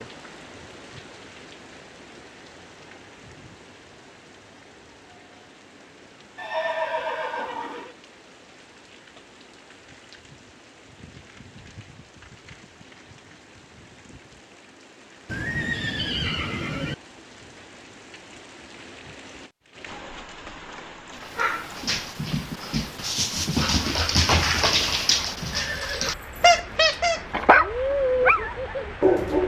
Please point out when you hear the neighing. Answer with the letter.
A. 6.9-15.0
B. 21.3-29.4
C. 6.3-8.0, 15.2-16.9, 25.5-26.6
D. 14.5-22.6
C.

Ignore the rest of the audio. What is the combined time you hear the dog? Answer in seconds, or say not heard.
8 s.